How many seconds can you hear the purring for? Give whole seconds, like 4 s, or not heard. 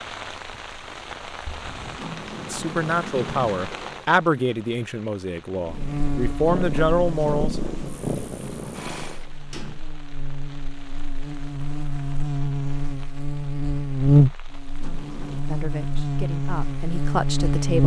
4 s.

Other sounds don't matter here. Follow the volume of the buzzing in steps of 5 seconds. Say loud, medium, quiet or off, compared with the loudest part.
off, medium, loud, loud.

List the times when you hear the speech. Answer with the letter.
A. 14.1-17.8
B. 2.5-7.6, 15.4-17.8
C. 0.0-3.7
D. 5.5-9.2
B.